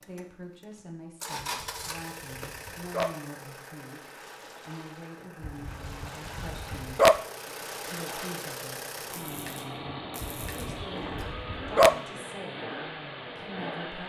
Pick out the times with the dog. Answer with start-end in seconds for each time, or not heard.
1.6-3.1, 5.4-7.2, 10.2-11.9.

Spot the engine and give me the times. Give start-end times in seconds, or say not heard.
0.0-14.0.